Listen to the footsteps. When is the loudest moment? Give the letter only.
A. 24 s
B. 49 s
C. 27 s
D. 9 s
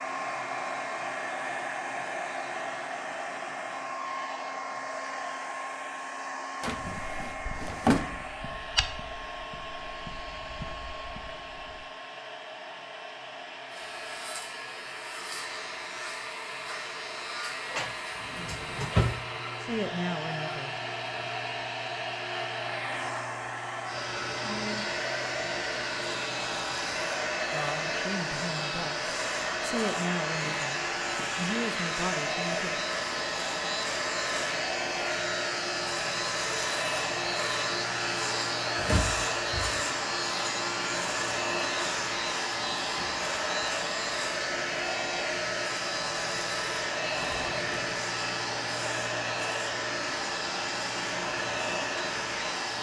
D.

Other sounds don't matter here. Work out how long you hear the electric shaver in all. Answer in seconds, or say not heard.
39 s.